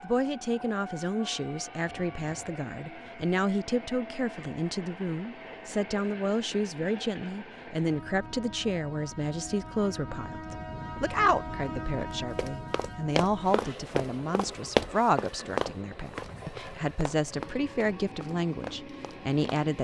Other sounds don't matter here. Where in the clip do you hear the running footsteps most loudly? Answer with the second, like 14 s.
15 s.